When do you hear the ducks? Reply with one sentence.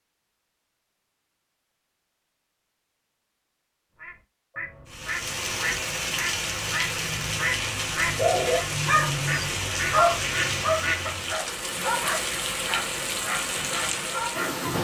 You can hear the ducks from 4.0 to 11.1 s.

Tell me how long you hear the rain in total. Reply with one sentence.
You can hear the rain for 10 seconds altogether.